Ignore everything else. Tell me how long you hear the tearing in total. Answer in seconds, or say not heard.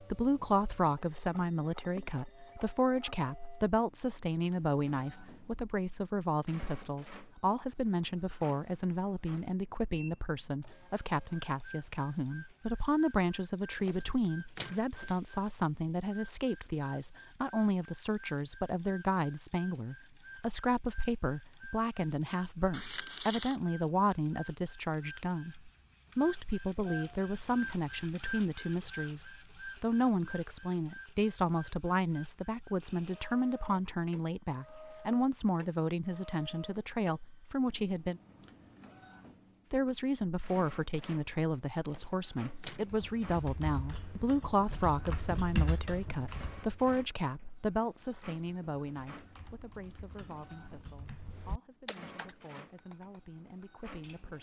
3 s.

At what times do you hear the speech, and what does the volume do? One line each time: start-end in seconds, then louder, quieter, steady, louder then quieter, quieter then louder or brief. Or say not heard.
0.0-38.2 steady
39.7-54.3 quieter.